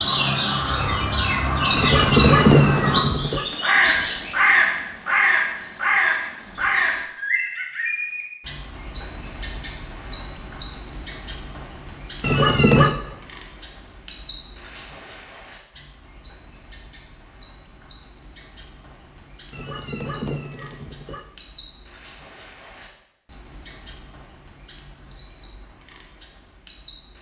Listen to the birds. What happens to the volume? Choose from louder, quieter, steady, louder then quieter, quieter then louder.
quieter.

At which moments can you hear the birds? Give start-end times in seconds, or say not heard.
0.0-27.1.